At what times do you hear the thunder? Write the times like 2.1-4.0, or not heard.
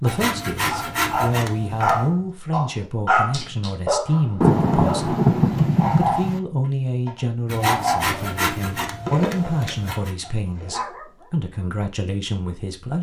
4.4-6.4.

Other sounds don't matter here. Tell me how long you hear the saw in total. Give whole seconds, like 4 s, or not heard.
5 s.